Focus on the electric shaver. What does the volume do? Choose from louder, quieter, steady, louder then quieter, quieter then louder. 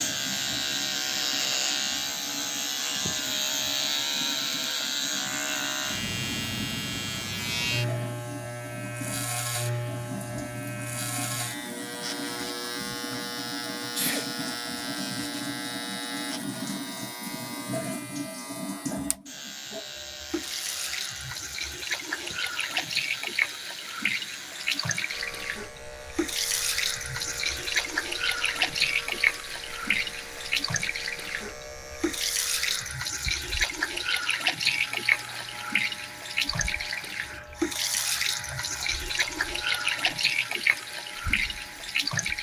quieter.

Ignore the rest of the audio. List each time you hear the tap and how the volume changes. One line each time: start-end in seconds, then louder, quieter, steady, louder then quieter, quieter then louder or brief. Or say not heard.
0.0-42.3 louder.